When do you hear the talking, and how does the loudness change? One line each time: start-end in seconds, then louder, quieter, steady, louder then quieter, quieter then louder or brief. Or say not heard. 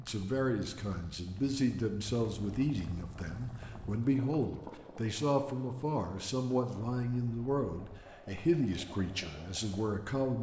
0.0-10.3 steady.